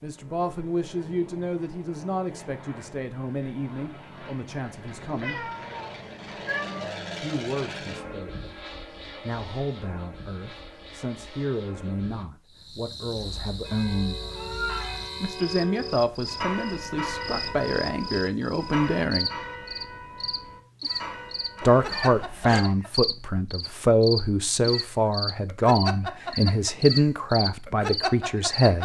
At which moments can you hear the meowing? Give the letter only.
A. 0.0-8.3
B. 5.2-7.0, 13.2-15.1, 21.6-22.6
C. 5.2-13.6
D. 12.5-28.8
B.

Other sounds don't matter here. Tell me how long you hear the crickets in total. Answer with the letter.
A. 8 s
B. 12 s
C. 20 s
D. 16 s
D.